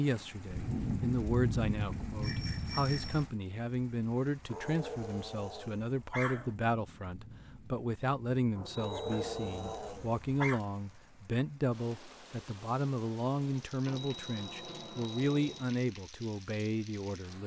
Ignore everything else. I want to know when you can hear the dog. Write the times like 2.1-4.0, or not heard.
4.5-6.5, 8.8-10.6.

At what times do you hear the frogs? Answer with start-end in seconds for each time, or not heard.
not heard.